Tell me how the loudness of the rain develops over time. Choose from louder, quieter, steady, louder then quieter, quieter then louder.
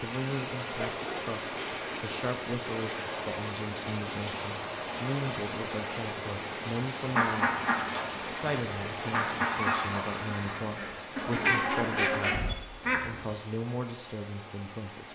quieter.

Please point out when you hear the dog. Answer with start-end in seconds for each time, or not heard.
not heard.